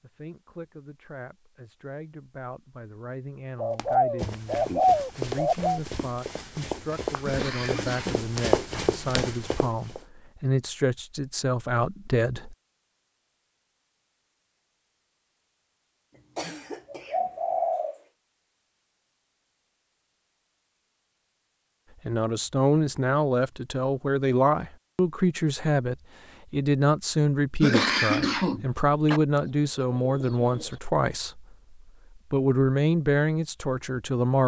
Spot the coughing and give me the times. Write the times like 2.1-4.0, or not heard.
7.2-8.8, 16.1-17.7, 27.6-29.2.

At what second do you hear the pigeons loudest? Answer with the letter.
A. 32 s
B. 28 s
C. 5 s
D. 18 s
C.